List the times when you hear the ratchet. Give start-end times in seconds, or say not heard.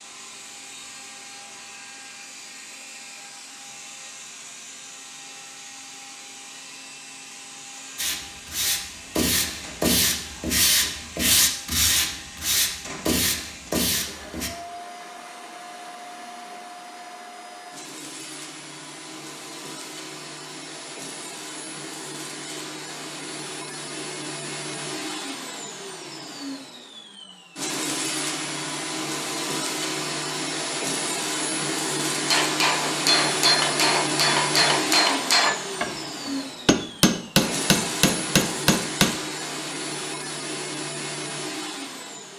not heard.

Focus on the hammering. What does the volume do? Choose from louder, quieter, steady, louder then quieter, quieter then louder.
steady.